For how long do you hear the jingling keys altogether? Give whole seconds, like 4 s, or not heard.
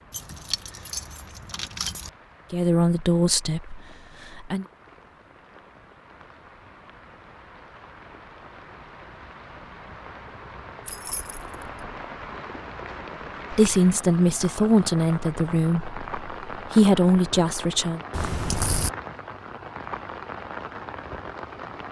4 s.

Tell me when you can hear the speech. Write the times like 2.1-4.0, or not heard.
2.5-4.7, 13.5-18.0.